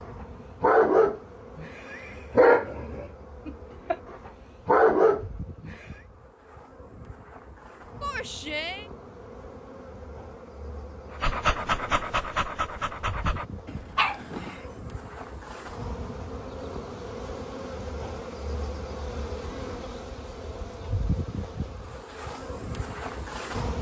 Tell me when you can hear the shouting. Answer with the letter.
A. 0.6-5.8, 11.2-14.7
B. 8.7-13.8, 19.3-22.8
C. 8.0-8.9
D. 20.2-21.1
C.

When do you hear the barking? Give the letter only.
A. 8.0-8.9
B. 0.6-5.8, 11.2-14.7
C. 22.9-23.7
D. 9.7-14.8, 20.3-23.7
B.